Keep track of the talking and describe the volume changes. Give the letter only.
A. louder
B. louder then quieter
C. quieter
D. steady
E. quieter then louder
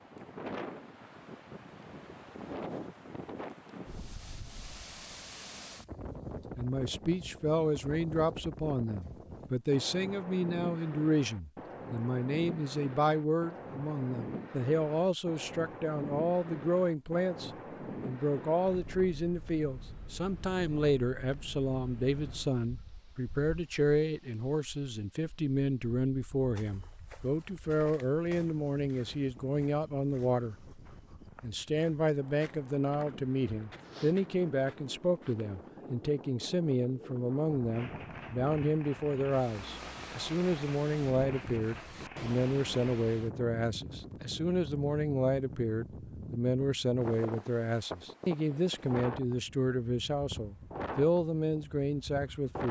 D.